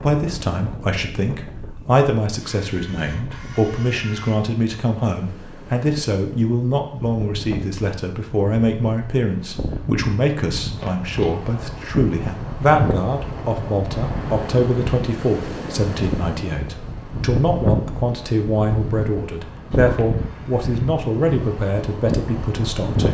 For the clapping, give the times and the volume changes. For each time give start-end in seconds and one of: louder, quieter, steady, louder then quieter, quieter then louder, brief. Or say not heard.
not heard.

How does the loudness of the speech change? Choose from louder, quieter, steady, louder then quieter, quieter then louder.
steady.